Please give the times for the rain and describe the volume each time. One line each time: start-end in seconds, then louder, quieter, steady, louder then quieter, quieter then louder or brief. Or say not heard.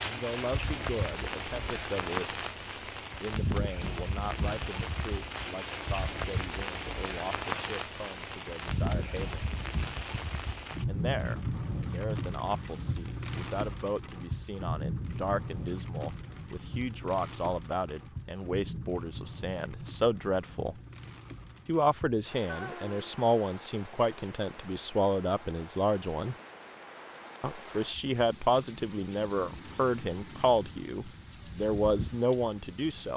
0.0-33.1 quieter.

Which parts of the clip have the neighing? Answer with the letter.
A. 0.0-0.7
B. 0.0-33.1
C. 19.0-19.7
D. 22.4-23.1
D.